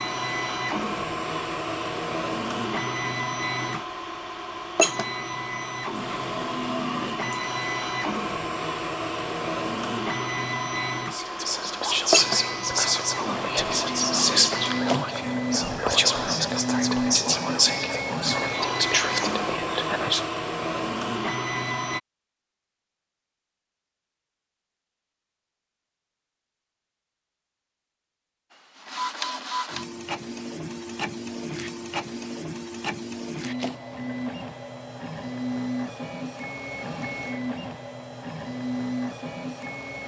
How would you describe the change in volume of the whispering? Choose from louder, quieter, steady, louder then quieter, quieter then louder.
steady.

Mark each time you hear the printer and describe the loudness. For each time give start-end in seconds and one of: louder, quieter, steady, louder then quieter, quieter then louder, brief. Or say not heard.
0.0-22.0 steady
28.5-40.0 steady.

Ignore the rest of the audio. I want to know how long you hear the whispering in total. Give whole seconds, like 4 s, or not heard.
9 s.